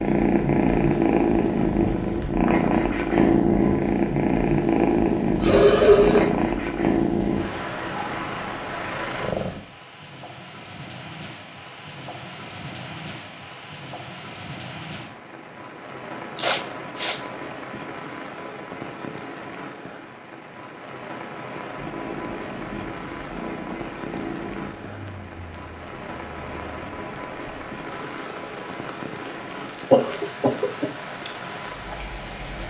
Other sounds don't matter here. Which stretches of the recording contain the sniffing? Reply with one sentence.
The sniffing can be heard from 5.4 to 6.3 s, from 16.4 to 17.2 s and from 29.9 to 30.9 s.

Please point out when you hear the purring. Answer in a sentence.
The purring can be heard from 0.0 to 9.7 s and from 21.8 to 32.6 s.